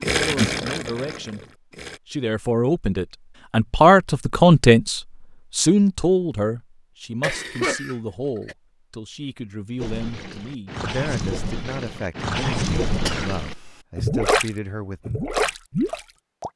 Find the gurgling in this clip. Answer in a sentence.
The gurgling can be heard from 0.0 to 2.0 s and from 9.8 to 16.5 s.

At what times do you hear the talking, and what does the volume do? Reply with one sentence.
The talking can be heard briefly from 0.1 to 1.4 s; and from 2.0 to 15.1 s, getting quieter.